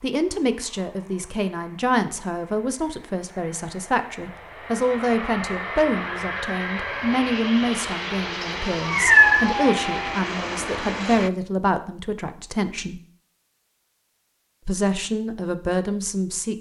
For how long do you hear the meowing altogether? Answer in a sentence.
The meowing can be heard for 2 seconds in total.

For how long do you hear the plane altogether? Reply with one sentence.
You can hear the plane for 11 seconds altogether.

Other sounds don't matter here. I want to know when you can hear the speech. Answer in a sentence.
You can hear the speech from 0.0 to 13.0 s and from 14.7 to 16.5 s.